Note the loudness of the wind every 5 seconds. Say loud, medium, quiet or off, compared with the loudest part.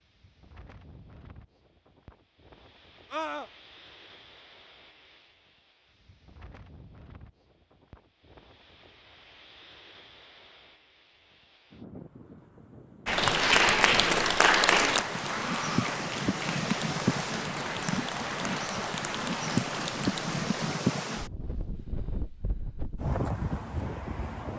quiet, quiet, quiet, loud, loud.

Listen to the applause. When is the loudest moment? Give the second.
14 s.